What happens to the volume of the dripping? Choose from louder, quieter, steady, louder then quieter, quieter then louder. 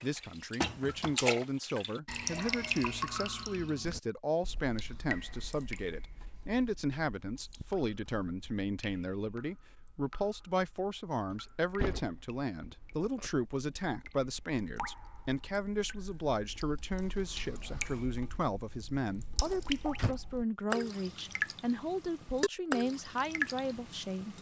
quieter then louder.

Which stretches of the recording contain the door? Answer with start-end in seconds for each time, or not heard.
0.6-1.2, 11.3-13.3, 19.4-20.1.